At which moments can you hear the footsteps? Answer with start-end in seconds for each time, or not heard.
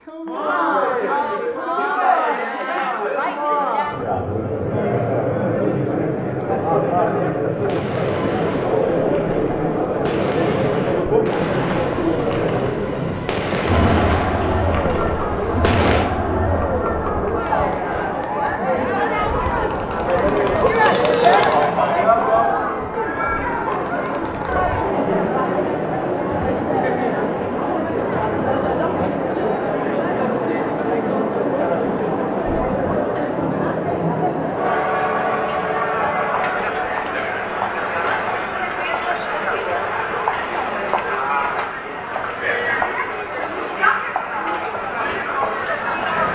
not heard.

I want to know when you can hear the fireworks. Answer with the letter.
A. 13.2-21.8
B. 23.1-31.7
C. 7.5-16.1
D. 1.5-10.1
C.